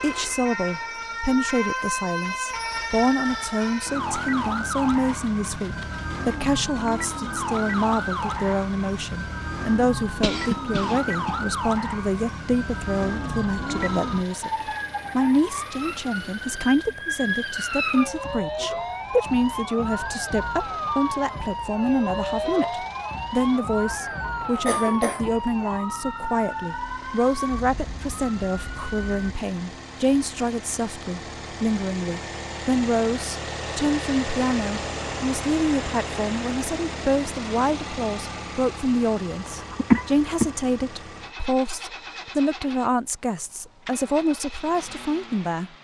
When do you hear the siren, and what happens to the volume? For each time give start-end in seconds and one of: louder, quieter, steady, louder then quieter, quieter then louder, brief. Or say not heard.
0.0-29.3 steady.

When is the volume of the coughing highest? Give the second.
40 s.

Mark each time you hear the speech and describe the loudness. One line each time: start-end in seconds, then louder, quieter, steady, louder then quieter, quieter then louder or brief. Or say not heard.
0.0-45.7 steady.